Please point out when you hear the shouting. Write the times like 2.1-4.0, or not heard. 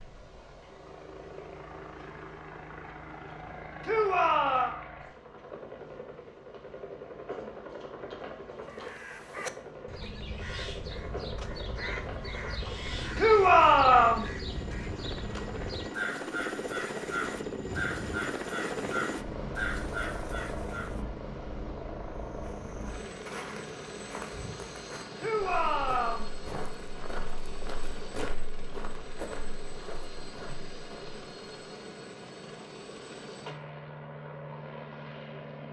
3.8-4.8, 13.2-14.2, 25.1-26.2.